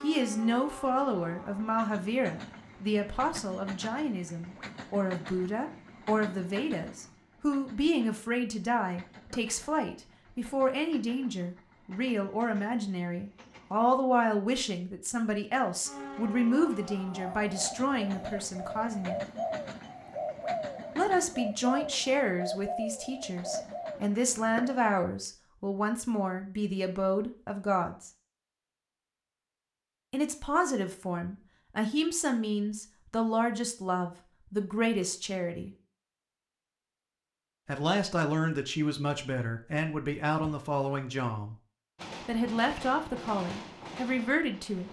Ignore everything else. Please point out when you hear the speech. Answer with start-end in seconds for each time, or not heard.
0.0-19.2, 20.9-28.1, 30.1-35.7, 37.6-41.5, 42.2-44.8.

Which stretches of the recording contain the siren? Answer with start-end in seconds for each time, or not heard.
not heard.